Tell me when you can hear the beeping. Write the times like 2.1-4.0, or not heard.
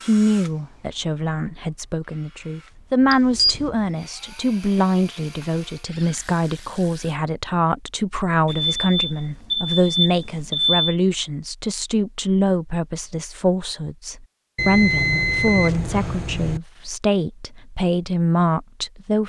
3.1-3.7, 8.4-10.9, 14.6-16.6.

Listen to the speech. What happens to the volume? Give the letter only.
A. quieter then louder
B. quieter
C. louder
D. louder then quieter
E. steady
E.